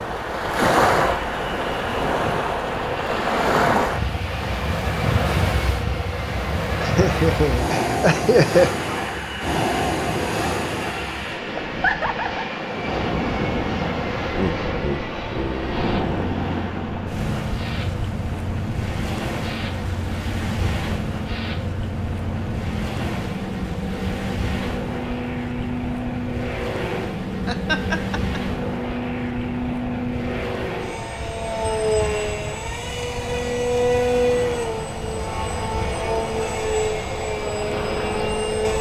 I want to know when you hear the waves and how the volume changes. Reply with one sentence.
The waves can be heard from 0.0 to 38.5 s, getting quieter.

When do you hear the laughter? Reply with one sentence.
You can hear the laughter from 6.8 to 8.7 s, from 14.3 to 16.2 s and from 27.4 to 28.4 s.